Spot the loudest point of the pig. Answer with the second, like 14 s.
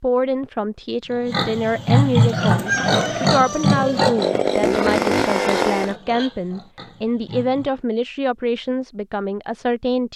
2 s.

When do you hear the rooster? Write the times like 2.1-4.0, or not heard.
1.6-4.2.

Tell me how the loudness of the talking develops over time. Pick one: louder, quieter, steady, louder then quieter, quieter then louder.
steady.